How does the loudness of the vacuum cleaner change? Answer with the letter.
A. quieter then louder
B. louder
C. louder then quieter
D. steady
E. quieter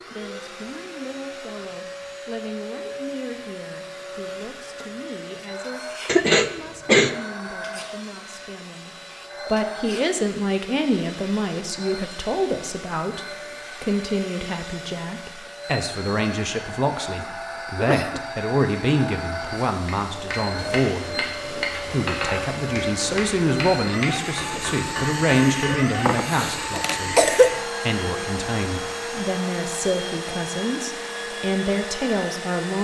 B.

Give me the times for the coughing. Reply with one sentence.
You can hear the coughing from 6.0 to 7.2 s, from 17.1 to 18.2 s and from 25.7 to 27.5 s.